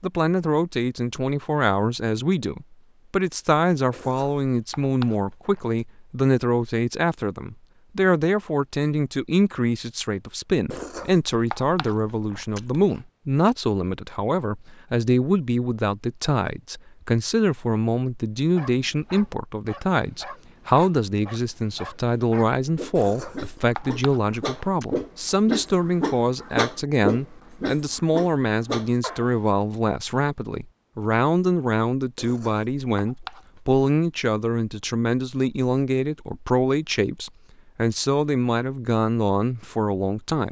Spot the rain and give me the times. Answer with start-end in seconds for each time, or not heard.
not heard.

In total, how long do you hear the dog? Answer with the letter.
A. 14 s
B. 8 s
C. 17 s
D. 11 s
D.